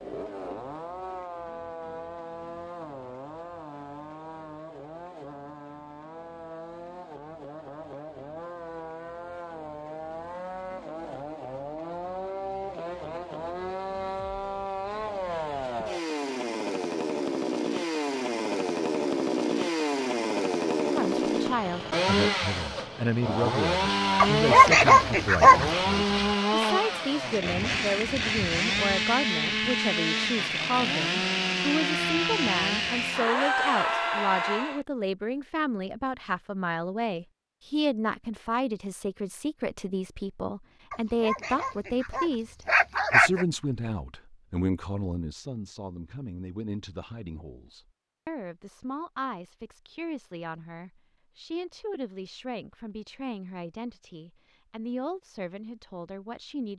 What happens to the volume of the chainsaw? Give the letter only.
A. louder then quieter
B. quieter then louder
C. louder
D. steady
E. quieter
C.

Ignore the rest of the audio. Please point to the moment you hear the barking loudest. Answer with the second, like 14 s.
25 s.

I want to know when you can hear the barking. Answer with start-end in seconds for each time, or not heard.
24.2-25.7, 40.9-43.5.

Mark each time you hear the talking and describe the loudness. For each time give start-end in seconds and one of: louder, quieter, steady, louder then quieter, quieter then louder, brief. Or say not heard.
20.9-56.7 quieter.